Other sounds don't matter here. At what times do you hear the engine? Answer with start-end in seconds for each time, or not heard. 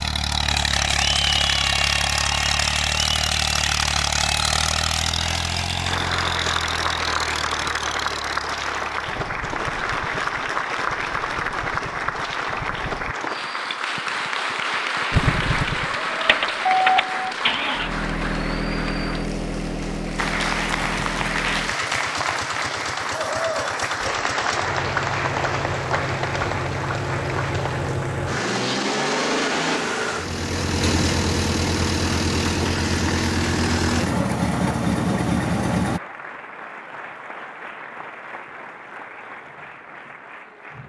0.0-13.2, 15.1-36.0.